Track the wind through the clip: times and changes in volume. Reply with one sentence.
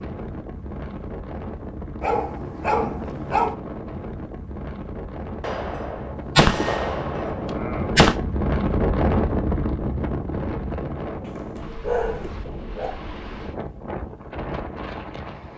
The wind can be heard from 0.0 to 15.5 s, getting louder then quieter.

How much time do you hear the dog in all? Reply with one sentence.
You can hear the dog for 3 seconds altogether.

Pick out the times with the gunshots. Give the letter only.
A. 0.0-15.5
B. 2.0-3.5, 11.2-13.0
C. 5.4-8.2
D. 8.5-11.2
C.